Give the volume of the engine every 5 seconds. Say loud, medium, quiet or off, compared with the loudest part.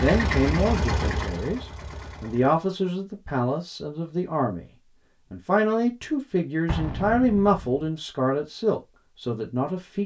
loud, off.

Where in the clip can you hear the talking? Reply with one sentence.
You can hear the talking from 0.0 to 4.7 s and from 5.3 to 10.0 s.